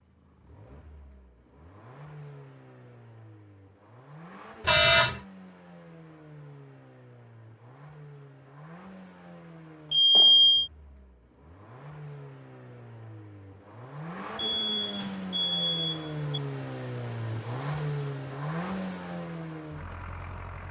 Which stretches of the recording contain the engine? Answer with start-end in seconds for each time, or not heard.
0.0-20.6.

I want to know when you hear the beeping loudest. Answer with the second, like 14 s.
10 s.